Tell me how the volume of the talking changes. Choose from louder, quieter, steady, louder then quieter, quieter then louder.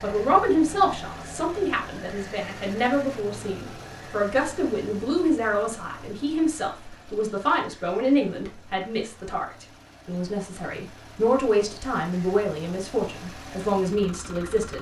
steady.